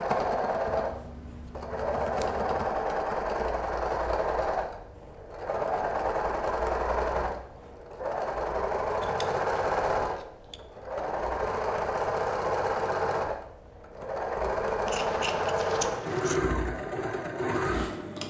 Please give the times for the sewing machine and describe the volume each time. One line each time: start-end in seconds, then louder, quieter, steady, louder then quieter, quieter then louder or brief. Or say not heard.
0.0-18.2 steady.